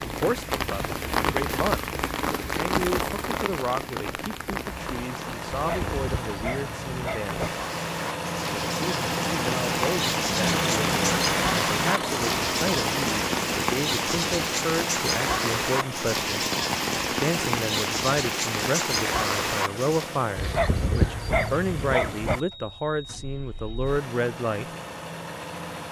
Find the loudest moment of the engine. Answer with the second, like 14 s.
11 s.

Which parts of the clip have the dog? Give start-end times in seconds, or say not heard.
5.5-7.5, 20.4-22.4.